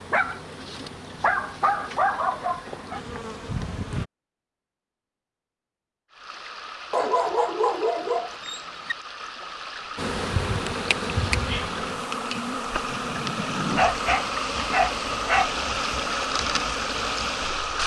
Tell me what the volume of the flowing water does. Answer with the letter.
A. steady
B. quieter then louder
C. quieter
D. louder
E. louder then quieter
D.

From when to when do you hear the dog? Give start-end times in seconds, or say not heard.
0.1-3.0, 6.9-8.9, 13.8-15.5.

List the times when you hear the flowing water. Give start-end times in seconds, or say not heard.
6.1-17.8.